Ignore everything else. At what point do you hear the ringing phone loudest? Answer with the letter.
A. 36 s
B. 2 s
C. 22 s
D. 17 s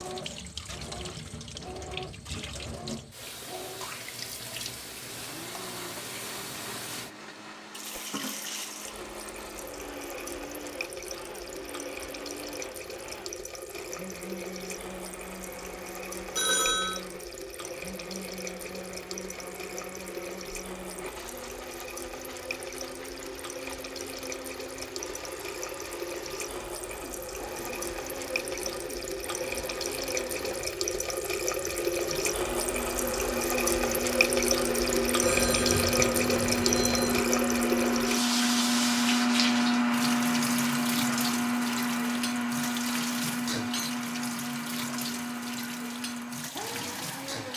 D.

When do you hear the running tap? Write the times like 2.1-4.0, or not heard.
0.0-47.5.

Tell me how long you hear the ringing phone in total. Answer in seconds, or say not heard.
3 s.